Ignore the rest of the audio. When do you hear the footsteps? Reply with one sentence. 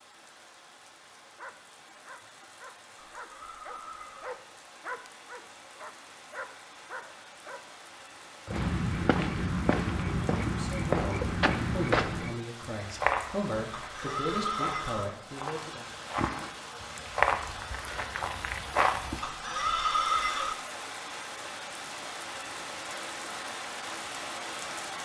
The footsteps can be heard from 8.4 to 19.2 s.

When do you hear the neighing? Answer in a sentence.
You can hear the neighing from 3.0 to 4.3 s, from 13.8 to 15.1 s and from 19.2 to 20.6 s.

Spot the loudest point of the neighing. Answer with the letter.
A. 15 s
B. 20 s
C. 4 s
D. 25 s
B.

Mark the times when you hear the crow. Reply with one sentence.
You can't hear the crow here.